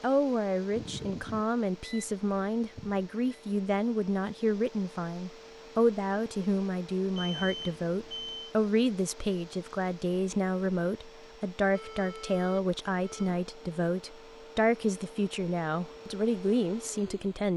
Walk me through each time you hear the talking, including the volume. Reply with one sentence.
The talking can be heard from 0.0 to 17.5 s, at a steady volume.